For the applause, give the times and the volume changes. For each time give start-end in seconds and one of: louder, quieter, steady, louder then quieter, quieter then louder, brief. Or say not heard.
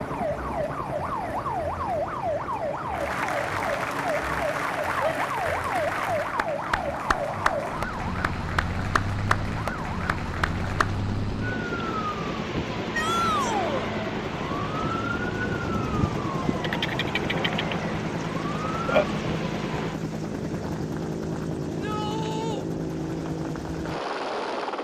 0.0-11.0 louder.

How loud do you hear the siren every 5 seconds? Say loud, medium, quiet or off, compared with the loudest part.
loud, loud, loud, loud, off.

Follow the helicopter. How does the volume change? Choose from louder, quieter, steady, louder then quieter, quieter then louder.
louder.